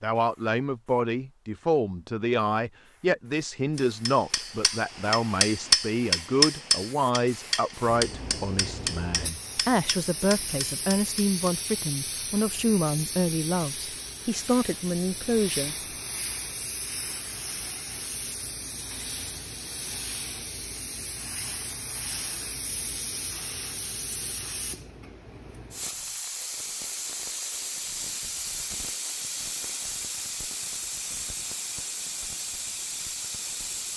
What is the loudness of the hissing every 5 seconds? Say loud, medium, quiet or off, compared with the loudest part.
quiet, medium, loud, loud, loud, loud, loud.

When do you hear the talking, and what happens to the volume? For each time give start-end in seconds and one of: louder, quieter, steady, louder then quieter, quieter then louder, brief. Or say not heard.
0.0-15.8 steady.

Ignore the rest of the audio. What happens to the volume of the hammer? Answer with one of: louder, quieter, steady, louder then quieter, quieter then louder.
louder then quieter.